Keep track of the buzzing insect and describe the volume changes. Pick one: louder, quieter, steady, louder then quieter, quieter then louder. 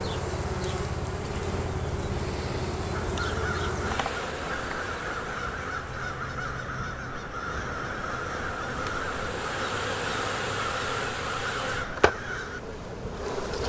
quieter then louder.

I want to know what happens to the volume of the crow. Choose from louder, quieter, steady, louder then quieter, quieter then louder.
steady.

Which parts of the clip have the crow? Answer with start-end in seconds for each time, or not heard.
3.0-12.6.